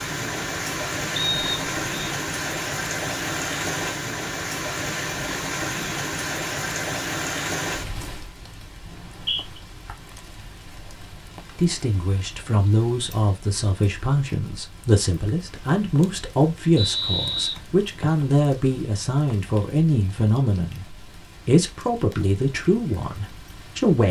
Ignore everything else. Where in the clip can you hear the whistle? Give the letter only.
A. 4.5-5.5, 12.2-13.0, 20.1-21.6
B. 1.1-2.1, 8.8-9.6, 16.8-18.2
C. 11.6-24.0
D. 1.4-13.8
B.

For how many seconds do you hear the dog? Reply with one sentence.
The dog can't be heard in this clip.